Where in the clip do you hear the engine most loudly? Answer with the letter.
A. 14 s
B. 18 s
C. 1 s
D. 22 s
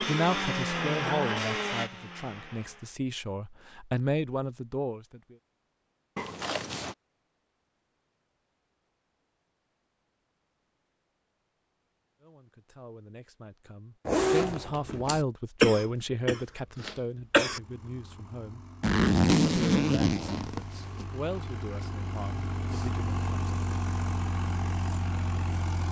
C.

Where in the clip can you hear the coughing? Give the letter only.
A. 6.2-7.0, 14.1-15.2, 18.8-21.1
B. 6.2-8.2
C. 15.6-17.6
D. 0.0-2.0
C.